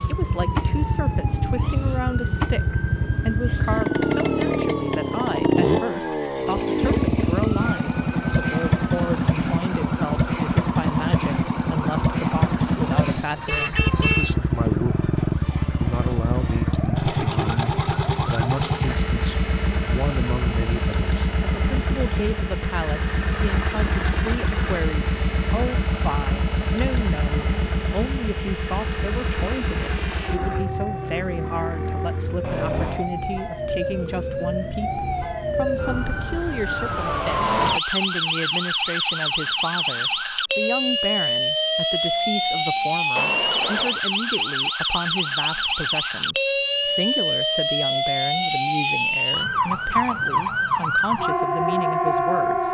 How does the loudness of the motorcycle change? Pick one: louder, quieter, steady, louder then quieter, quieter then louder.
quieter.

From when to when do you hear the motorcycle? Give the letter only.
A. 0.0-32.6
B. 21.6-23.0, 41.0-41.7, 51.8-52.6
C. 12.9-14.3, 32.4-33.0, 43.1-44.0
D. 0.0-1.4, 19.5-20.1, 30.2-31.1
A.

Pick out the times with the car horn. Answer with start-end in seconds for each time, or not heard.
12.9-14.3, 32.4-33.0, 43.1-44.0.